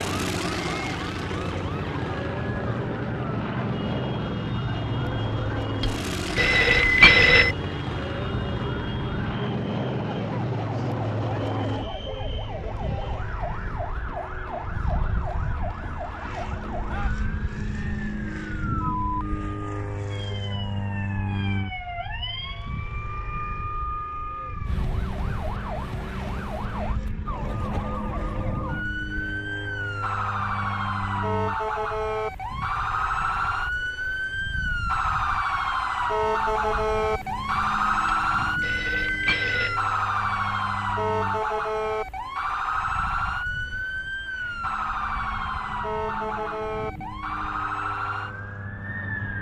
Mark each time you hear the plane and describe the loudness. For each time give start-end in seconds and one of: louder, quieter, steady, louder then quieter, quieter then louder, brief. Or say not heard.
0.0-49.3 quieter.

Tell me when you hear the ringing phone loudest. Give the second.
7 s.